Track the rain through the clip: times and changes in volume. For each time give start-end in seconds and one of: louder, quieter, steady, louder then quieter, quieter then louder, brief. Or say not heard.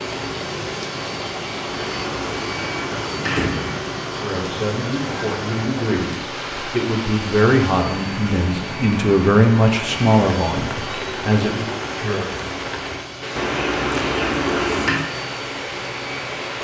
0.0-16.5 steady.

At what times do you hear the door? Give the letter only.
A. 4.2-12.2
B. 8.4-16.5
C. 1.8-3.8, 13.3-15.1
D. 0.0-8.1
C.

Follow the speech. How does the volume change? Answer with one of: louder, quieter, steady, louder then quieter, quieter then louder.
louder then quieter.